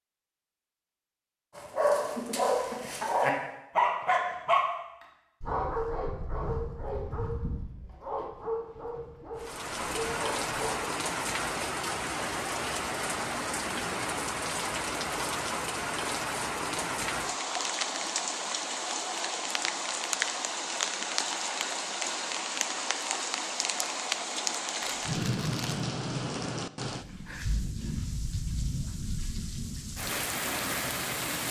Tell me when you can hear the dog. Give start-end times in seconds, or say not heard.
1.6-10.7.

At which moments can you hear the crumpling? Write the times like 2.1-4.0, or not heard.
24.8-25.9.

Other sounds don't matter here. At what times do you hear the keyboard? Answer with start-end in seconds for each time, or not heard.
not heard.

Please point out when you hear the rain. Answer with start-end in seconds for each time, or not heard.
9.3-31.4.